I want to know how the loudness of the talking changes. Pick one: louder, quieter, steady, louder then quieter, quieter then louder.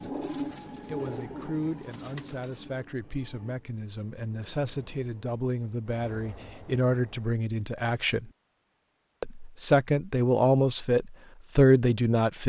louder.